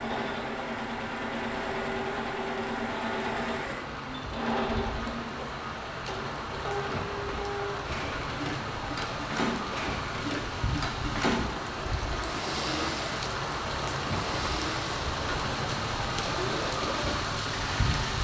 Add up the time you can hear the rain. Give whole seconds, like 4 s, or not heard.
18 s.